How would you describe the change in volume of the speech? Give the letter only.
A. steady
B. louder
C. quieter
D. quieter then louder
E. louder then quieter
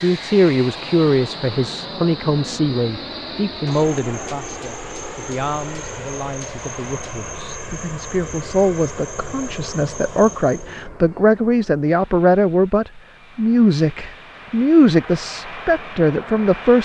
D.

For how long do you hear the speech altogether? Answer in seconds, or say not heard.
17 s.